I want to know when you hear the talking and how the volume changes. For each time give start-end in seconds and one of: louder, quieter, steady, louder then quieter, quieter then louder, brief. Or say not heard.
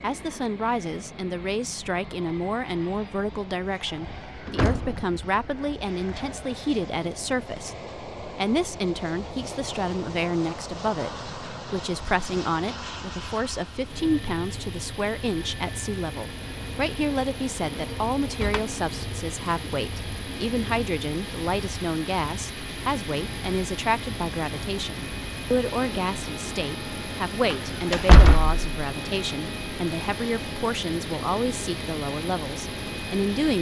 0.0-33.5 steady.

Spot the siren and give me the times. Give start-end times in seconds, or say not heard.
not heard.